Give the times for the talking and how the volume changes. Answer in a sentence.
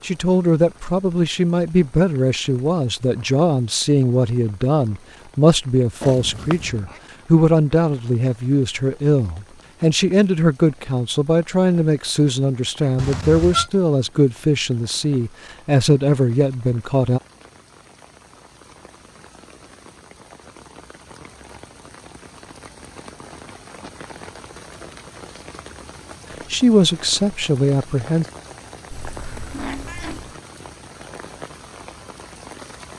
You can hear the talking from 0.0 to 17.2 s, at a steady volume; and briefly from 26.5 to 28.2 s.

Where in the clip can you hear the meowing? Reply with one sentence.
The meowing can be heard from 6.0 to 7.0 s, from 12.9 to 13.7 s and from 28.9 to 30.4 s.